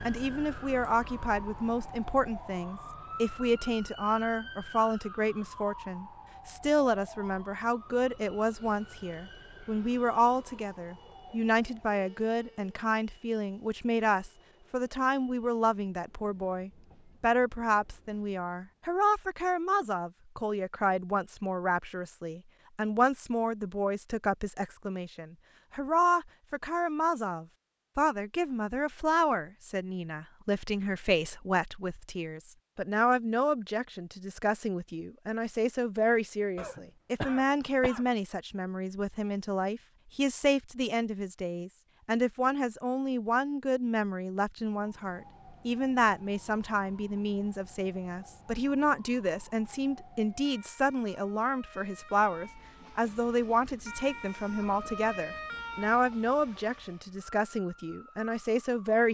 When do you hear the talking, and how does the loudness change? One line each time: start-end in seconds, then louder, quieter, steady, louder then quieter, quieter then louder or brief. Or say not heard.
0.1-59.0 steady.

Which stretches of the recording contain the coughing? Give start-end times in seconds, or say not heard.
36.5-38.0.